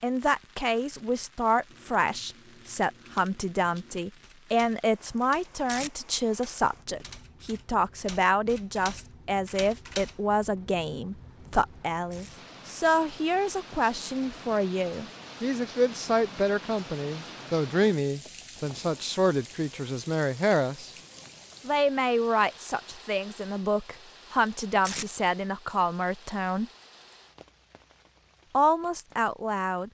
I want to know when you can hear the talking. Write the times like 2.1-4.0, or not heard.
0.0-20.9, 21.6-26.7, 28.5-29.8.